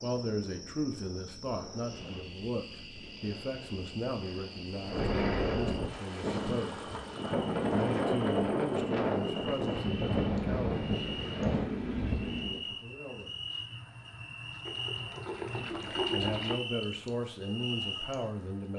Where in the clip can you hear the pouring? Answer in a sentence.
The pouring can be heard from 6.5 to 7.3 s and from 14.7 to 16.6 s.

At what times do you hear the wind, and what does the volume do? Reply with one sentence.
The wind can be heard from 0.0 to 12.6 s, getting louder.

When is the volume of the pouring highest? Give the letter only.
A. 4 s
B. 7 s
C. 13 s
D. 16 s
D.